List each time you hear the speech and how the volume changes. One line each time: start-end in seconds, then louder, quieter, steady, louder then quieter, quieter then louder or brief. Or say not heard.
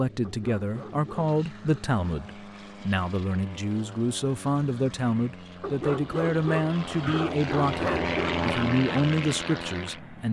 0.0-10.2 steady.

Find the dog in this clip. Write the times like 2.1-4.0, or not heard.
0.2-1.9, 5.6-8.4.